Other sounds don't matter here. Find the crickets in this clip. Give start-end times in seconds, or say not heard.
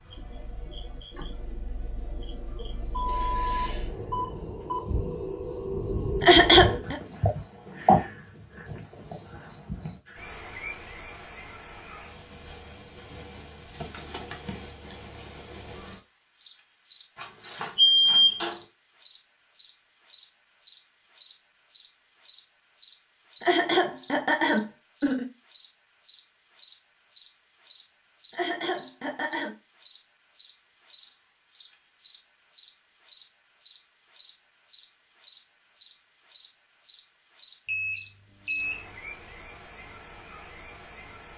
0.0-41.3.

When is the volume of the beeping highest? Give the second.
18 s.